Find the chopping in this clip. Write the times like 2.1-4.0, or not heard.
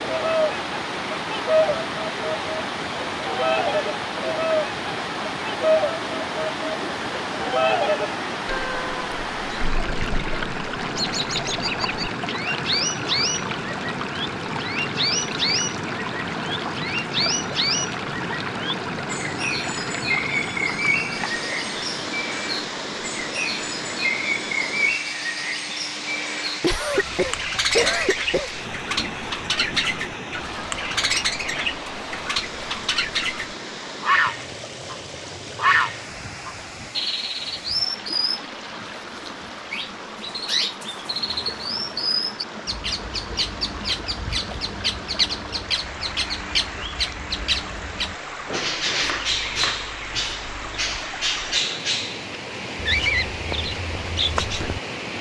49.0-51.0.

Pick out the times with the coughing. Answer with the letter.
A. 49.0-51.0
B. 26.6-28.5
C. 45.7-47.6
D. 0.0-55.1
B.